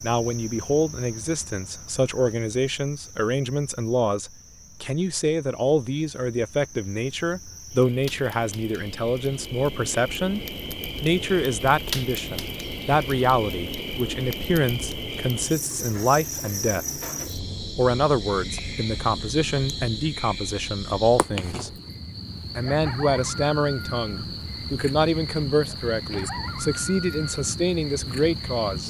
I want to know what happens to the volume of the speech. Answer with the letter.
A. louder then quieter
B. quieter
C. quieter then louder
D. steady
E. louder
D.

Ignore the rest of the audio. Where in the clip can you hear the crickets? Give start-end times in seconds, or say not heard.
0.0-28.8.